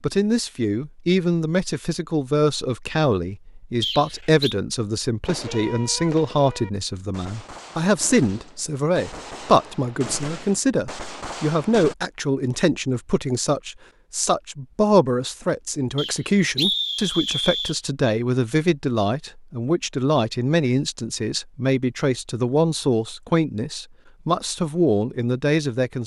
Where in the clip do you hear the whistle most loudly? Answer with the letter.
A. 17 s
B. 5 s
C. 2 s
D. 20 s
A.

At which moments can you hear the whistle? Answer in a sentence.
You can hear the whistle from 3.8 to 4.5 s and from 15.9 to 17.8 s.